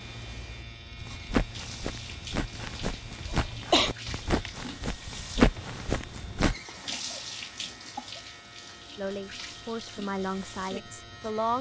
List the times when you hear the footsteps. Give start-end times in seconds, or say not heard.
0.9-6.5.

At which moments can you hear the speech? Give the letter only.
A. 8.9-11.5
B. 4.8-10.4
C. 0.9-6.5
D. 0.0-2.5
A.